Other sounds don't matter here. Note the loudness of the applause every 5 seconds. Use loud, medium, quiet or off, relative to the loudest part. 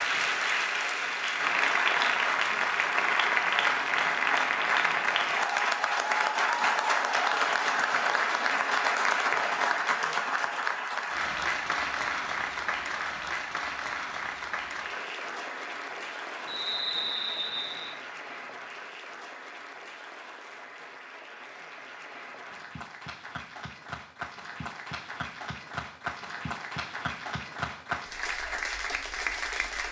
loud, loud, medium, quiet, quiet, medium.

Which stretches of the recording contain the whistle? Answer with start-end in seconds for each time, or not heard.
16.4-17.9.